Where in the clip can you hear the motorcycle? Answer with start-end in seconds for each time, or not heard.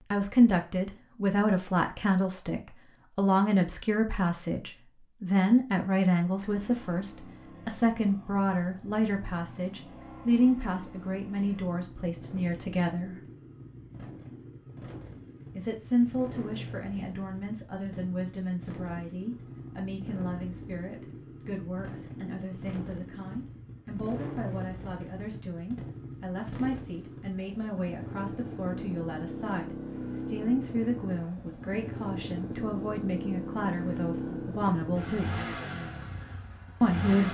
6.3-37.3.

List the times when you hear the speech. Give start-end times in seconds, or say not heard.
0.1-13.2, 15.6-35.5, 36.8-37.3.